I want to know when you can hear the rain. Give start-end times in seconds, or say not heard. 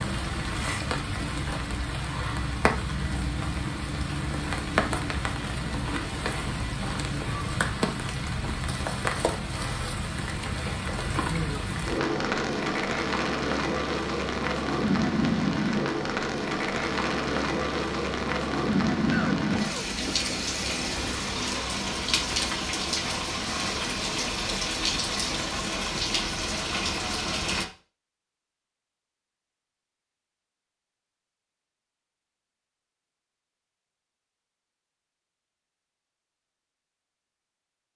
0.0-27.6.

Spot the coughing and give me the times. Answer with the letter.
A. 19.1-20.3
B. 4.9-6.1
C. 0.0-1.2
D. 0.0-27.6
A.